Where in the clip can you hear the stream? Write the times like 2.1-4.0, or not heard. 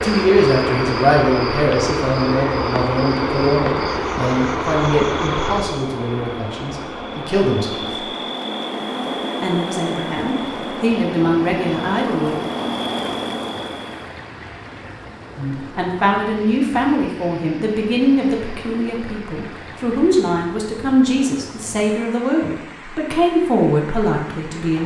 0.0-24.8.